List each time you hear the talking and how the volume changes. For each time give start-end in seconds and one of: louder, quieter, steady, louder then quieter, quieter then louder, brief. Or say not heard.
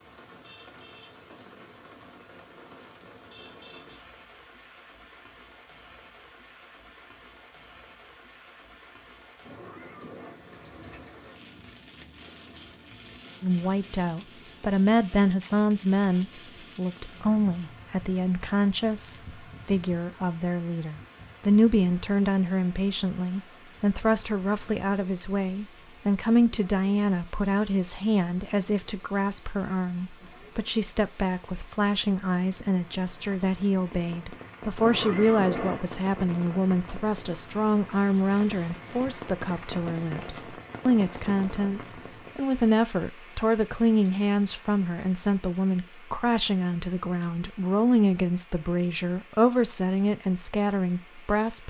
13.4-51.6 steady.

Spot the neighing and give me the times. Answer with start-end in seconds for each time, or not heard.
9.4-10.3, 34.8-35.8.